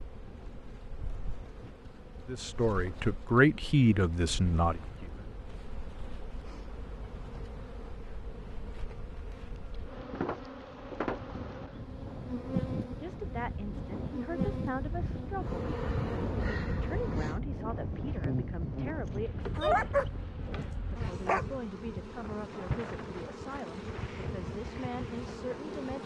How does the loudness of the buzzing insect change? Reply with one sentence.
The loudness of the buzzing insect goes up.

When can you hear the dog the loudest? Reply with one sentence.
The loudest moment of the dog is at 20 seconds.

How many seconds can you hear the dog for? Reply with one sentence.
The dog can be heard for 2 seconds in total.